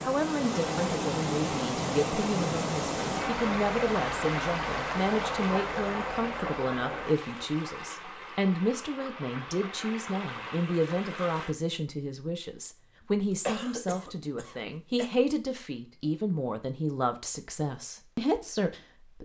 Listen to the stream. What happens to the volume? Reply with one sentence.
The volume of the stream goes down.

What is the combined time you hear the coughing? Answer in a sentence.
You can hear the coughing for 2 seconds altogether.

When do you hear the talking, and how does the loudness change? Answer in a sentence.
The talking can be heard from 0.0 to 19.2 s, at a steady volume.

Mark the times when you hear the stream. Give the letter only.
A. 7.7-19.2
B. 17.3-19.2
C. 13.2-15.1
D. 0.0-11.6
D.